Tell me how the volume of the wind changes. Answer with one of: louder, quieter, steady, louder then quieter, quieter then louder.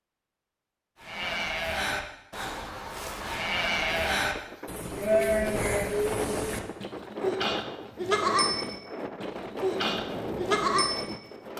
louder.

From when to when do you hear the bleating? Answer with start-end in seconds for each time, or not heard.
1.0-11.5.